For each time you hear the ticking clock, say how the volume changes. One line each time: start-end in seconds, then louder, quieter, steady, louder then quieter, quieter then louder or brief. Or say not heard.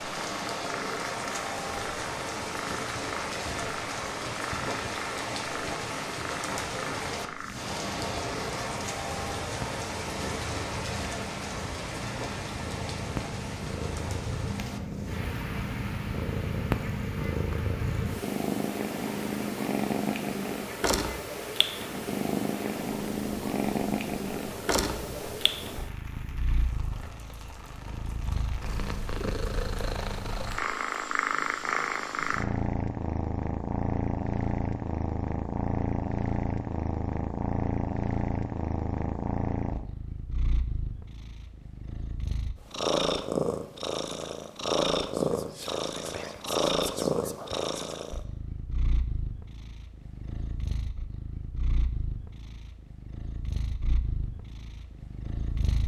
not heard.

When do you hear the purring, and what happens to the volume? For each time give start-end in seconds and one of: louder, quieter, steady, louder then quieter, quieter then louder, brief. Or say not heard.
0.2-55.8 louder.